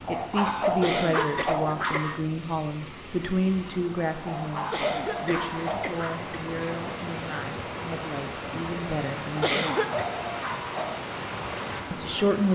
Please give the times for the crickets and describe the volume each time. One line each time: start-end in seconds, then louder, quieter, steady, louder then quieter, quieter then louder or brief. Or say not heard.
not heard.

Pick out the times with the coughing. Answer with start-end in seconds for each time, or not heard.
0.8-2.0, 4.7-6.6, 9.4-10.1.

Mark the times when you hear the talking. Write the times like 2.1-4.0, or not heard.
0.1-9.5, 11.9-12.5.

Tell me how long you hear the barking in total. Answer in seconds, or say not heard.
6 s.